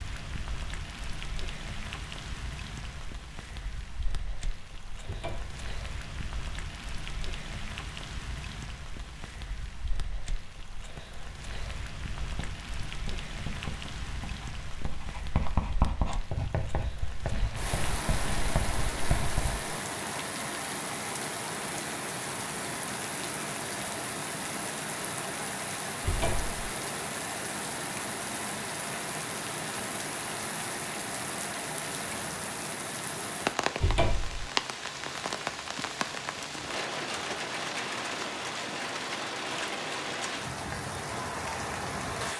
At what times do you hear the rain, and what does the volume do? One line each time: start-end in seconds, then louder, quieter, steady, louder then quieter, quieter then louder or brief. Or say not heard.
0.0-42.3 louder.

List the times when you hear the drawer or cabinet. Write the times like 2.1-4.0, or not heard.
5.0-5.6, 26.0-26.6, 33.8-34.5.